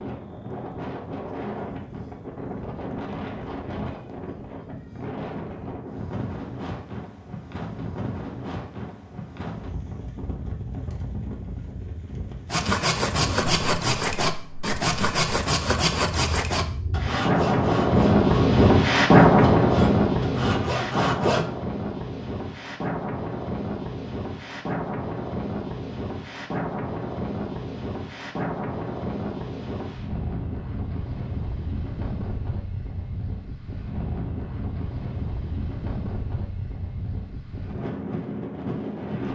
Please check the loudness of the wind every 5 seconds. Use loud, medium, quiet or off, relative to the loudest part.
quiet, quiet, quiet, loud, medium, quiet, quiet, quiet.